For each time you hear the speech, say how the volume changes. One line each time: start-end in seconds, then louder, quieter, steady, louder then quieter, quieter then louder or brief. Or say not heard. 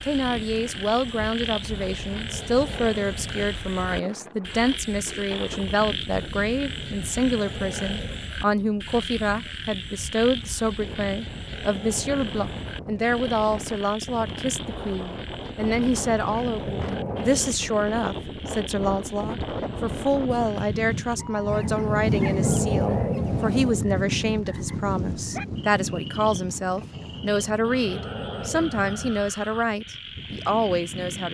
0.0-31.2 steady.